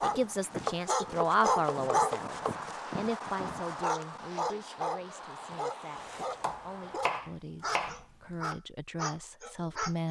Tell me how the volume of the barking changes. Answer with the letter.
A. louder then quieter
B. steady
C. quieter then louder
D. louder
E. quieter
E.